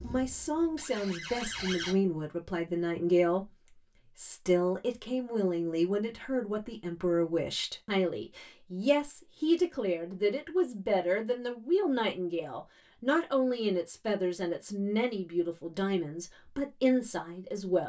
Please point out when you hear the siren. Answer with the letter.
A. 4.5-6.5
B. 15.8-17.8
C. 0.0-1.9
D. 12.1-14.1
C.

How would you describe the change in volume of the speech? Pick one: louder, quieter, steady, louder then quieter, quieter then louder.
steady.